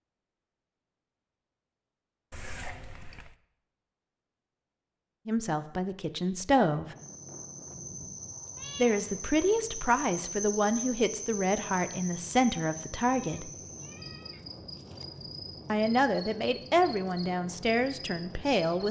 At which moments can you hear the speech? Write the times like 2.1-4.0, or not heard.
5.2-7.0, 8.8-13.5, 15.7-18.8.